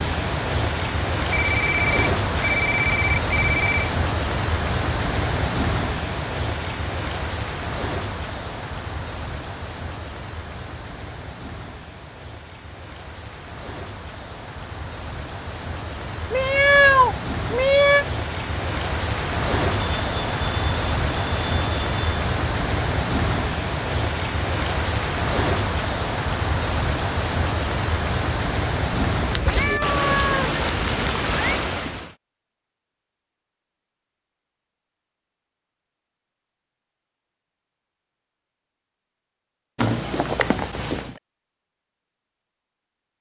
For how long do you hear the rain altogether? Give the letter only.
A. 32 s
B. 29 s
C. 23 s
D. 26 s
A.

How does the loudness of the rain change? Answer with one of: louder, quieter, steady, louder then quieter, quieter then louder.
quieter then louder.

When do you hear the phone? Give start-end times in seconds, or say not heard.
1.3-3.9, 19.8-22.3, 39.8-41.1.